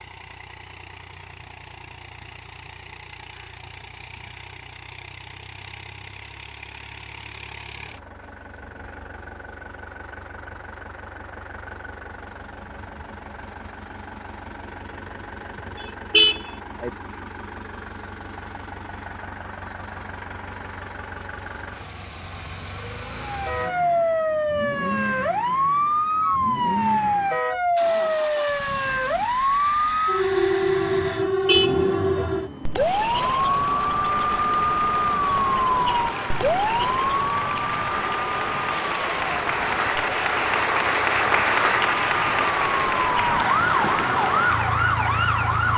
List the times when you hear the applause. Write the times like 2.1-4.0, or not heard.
34.0-45.7.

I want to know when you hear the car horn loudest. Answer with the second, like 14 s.
16 s.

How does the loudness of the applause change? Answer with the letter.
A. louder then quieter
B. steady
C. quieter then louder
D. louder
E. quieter
A.